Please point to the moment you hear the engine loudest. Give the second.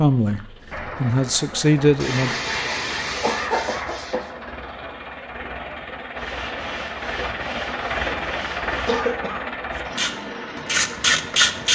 8 s.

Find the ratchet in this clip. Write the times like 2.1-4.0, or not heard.
9.8-11.7.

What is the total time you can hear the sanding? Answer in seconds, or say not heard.
5 s.